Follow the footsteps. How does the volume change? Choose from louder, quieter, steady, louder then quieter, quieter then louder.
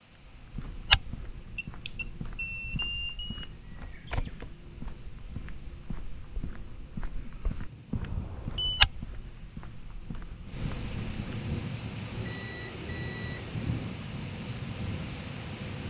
quieter then louder.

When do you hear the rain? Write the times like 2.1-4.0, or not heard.
0.0-15.8.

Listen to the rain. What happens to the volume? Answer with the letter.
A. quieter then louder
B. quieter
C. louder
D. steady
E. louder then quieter
C.